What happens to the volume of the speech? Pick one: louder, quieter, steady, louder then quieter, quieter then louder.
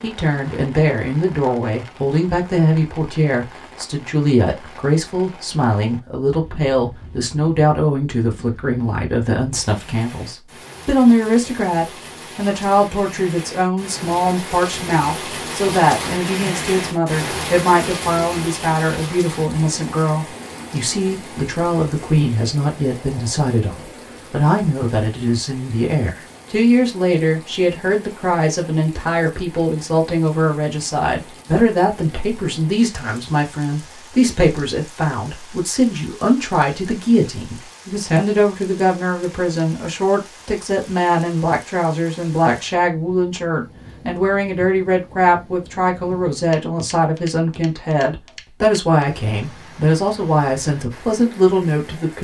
steady.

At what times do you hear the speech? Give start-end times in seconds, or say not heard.
0.0-52.1.